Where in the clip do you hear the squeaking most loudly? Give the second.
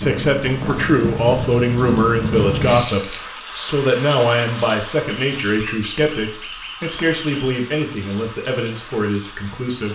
3 s.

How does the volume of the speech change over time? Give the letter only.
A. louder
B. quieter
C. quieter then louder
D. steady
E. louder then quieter
B.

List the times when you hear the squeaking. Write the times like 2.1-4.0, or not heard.
2.6-3.1, 5.0-7.6.